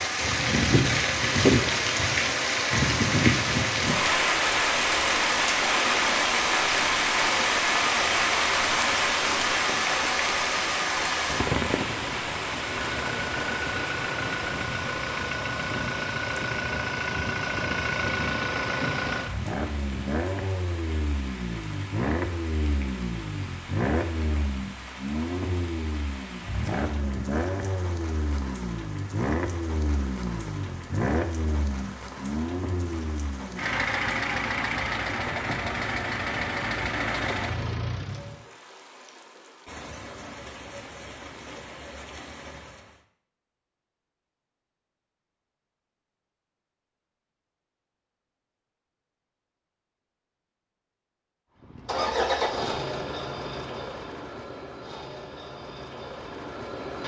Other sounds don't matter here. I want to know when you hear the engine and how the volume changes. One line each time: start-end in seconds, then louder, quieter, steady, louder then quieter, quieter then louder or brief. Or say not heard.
0.0-38.5 steady
51.6-57.0 quieter.